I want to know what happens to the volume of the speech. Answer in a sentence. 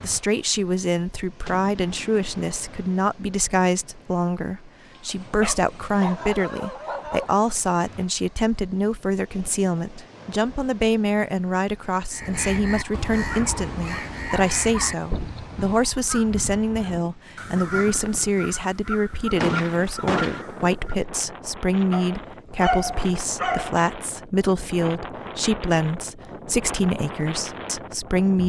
The loudness of the speech stays about the same.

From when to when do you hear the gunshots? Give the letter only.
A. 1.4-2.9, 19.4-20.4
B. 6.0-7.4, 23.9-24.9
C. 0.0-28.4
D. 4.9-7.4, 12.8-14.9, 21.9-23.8
A.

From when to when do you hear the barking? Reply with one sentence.
You can hear the barking from 4.9 to 7.4 s, from 12.8 to 14.9 s and from 21.9 to 23.8 s.